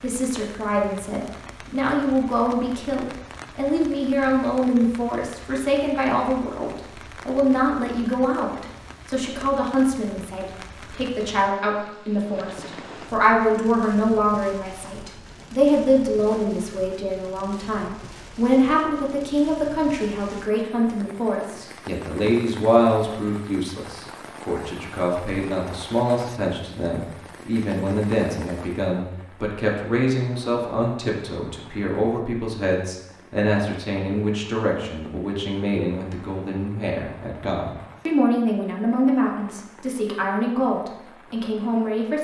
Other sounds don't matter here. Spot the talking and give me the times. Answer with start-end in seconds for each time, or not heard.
0.0-42.2.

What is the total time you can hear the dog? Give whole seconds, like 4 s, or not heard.
not heard.